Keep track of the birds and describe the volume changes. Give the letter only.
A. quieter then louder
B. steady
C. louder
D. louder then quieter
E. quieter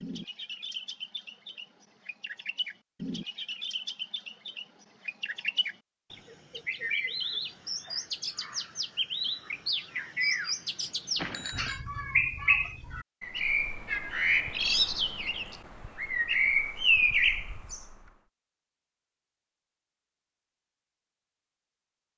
C.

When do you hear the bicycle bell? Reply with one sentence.
You can hear the bicycle bell from 11.2 to 11.8 s.